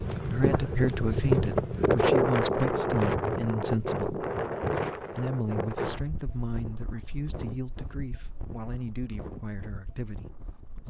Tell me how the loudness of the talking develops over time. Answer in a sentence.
The loudness of the talking goes down.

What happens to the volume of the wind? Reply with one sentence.
The loudness of the wind goes down.